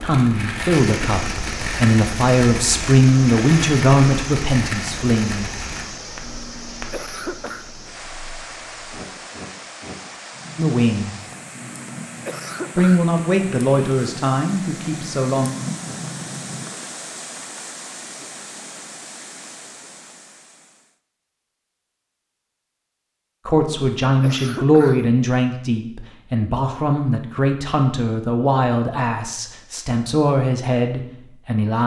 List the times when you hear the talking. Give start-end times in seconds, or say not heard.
0.0-5.5, 10.6-11.2, 12.8-15.5, 23.4-31.8.